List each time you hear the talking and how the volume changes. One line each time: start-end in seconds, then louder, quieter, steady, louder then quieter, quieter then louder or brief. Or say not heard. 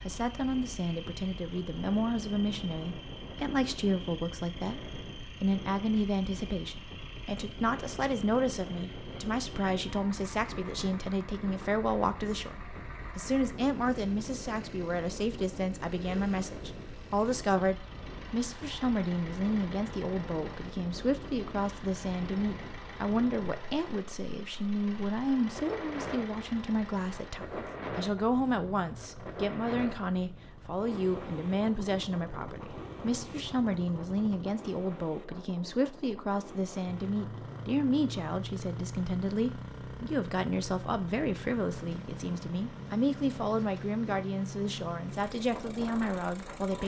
0.1-46.8 steady.